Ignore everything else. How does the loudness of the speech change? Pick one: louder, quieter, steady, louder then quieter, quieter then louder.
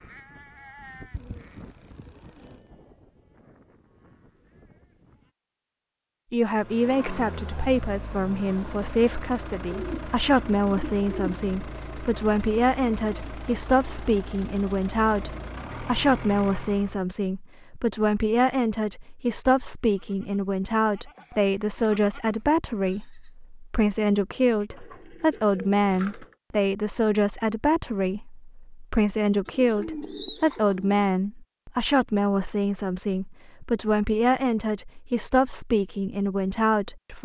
steady.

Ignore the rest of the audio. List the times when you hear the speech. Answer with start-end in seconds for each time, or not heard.
6.3-37.2.